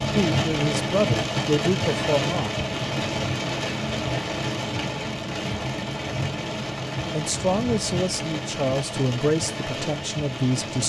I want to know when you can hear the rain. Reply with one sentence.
You can hear the rain from 0.0 to 10.8 s.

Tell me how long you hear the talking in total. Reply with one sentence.
You can hear the talking for 6 seconds altogether.